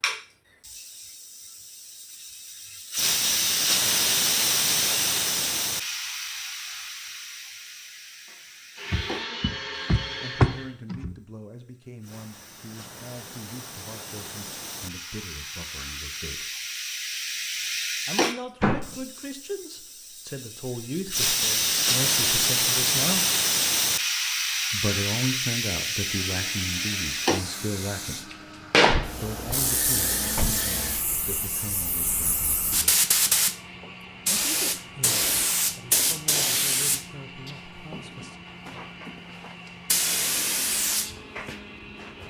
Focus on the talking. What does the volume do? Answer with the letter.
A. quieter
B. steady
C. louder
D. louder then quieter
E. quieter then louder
D.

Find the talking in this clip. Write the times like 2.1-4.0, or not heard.
9.7-16.5, 18.1-23.2, 24.7-28.3, 29.2-33.0, 34.2-38.5.